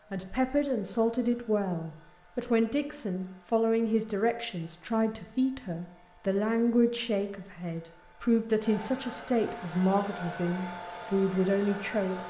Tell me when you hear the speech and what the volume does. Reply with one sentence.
You can hear the speech from 0.1 to 12.2 s, at a steady volume.